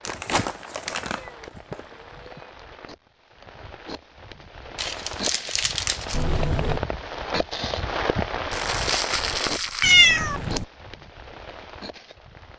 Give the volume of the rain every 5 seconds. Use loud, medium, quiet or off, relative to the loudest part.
quiet, loud, medium.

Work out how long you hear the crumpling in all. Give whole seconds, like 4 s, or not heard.
5 s.